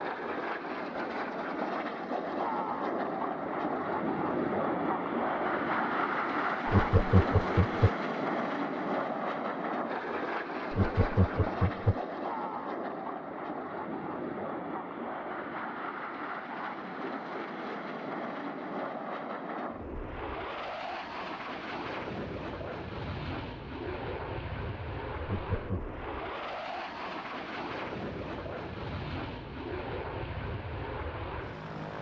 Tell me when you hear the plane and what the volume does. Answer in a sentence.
You can hear the plane from 0.0 to 31.9 s, getting quieter.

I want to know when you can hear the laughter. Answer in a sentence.
The laughter can be heard from 6.7 to 7.9 s, from 10.7 to 12.0 s and from 25.2 to 25.8 s.